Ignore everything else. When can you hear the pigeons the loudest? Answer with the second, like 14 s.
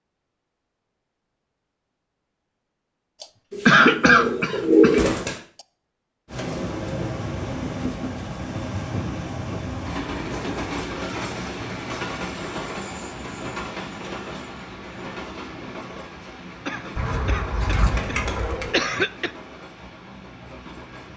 5 s.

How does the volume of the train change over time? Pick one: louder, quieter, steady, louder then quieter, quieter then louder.
quieter.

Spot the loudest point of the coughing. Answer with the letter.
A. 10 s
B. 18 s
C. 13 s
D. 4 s
D.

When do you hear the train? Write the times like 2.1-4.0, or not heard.
6.2-21.1.